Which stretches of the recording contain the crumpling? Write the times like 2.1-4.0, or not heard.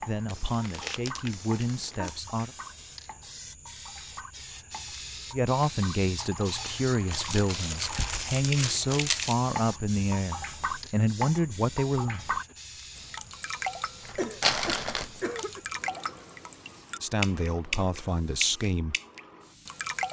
0.2-2.2, 7.1-9.3, 14.1-15.2.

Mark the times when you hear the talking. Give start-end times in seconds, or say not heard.
0.0-2.5, 5.3-12.4, 17.0-18.9.